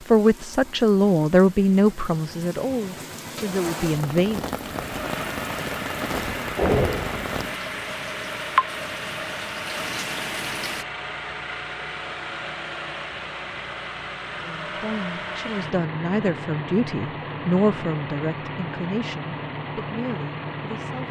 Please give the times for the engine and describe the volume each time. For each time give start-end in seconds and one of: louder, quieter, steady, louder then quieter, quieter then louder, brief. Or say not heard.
4.6-21.0 steady.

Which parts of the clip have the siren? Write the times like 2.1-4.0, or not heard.
not heard.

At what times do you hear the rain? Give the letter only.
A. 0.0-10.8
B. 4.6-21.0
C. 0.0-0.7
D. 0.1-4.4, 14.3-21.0
A.